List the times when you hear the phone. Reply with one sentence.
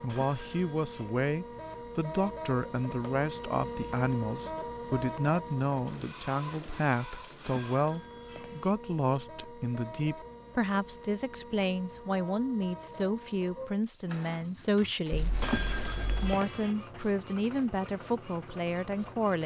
You can hear the phone from 0.1 to 1.1 s, from 7.4 to 8.8 s and from 15.4 to 16.8 s.